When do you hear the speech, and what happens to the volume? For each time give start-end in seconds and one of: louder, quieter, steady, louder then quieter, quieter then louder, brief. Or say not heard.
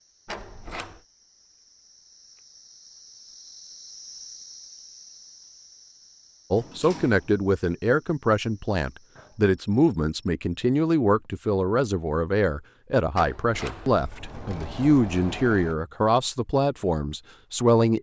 6.5-17.9 steady.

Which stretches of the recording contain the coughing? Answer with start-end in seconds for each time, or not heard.
not heard.